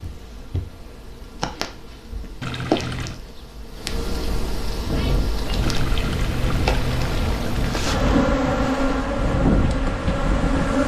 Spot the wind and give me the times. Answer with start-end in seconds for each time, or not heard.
4.7-10.8.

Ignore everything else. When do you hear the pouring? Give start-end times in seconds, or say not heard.
2.4-3.2, 5.6-8.2.